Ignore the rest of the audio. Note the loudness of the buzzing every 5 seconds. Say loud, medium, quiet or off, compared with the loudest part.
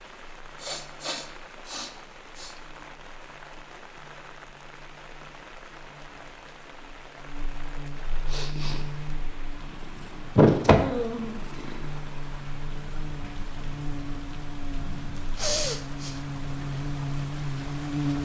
quiet, medium, medium, loud.